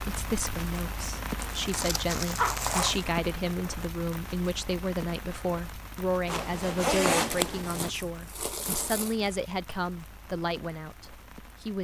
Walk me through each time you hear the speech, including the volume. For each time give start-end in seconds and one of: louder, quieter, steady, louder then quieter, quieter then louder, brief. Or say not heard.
0.0-11.7 steady.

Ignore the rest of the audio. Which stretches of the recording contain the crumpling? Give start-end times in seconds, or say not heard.
1.4-3.1, 7.0-9.3.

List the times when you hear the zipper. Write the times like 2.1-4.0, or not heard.
2.4-3.0, 6.2-7.9.